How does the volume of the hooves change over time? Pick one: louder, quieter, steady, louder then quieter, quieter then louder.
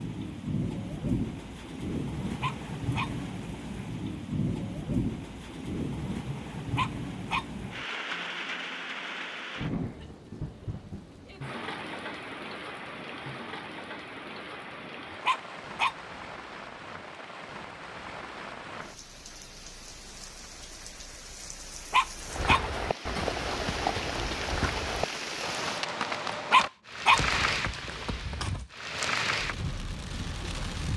quieter.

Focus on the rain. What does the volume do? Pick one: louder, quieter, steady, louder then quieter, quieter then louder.
quieter then louder.